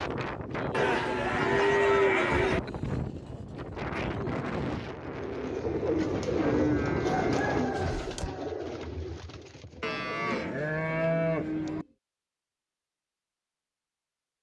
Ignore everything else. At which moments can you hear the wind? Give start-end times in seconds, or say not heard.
0.0-8.0.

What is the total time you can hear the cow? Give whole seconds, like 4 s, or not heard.
6 s.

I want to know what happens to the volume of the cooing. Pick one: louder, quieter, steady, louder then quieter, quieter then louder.
quieter.